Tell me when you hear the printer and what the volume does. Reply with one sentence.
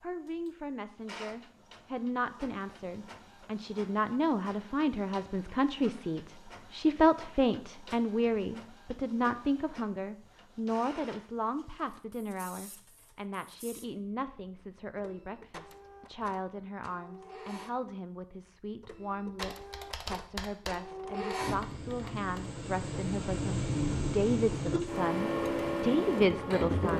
The printer can be heard from 0.0 to 26.9 s, getting louder.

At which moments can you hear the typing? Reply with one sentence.
You can hear the typing from 19.4 to 22.6 s.